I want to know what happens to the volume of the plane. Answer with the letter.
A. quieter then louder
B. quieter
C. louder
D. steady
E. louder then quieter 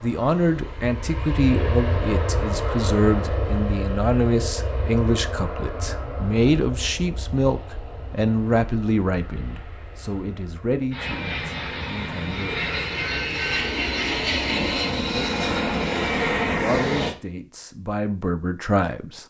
A.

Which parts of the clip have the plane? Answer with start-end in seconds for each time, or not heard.
0.0-17.1.